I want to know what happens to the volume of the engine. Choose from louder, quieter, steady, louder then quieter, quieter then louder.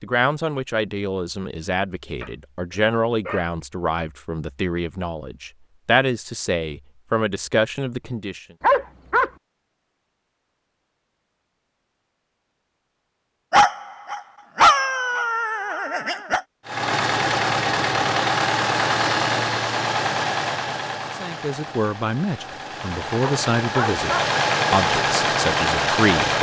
quieter then louder.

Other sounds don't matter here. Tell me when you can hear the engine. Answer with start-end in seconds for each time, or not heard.
16.6-26.3.